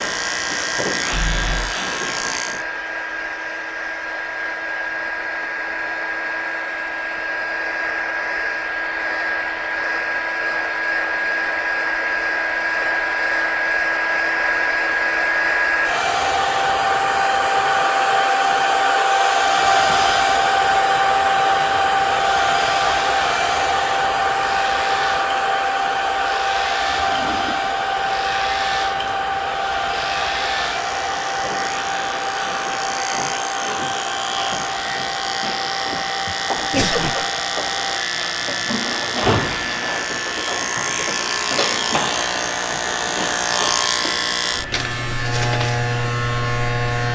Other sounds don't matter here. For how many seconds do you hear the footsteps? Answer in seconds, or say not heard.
not heard.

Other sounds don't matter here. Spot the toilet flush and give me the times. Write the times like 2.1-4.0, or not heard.
1.1-1.8, 26.9-27.7, 38.4-40.0.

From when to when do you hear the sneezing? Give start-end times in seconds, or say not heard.
36.2-37.3.